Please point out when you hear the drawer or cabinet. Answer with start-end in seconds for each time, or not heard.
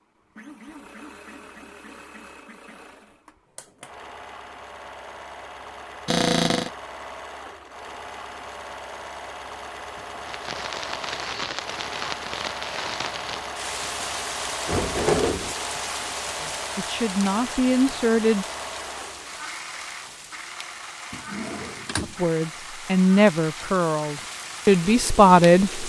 6.0-6.7, 14.7-15.6, 21.1-22.1.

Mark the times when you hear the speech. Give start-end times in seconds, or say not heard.
16.4-18.4, 22.0-25.8.